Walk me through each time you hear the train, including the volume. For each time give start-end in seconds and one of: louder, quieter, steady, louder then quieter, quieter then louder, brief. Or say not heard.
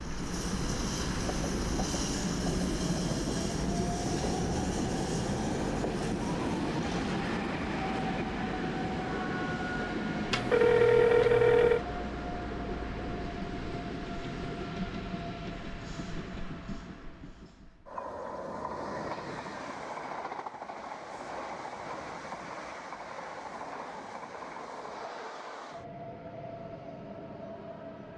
0.0-28.1 quieter.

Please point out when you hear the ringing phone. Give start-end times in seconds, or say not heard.
10.3-11.8.